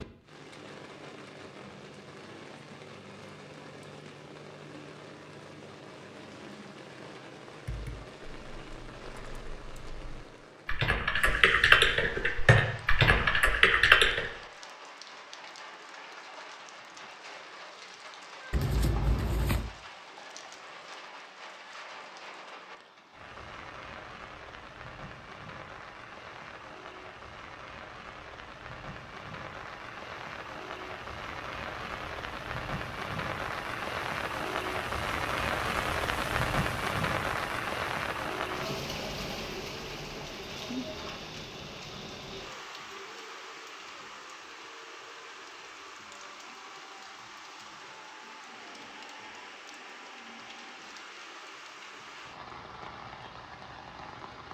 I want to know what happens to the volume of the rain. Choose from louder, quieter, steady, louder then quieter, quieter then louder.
louder then quieter.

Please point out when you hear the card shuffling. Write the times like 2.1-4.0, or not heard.
18.5-19.7.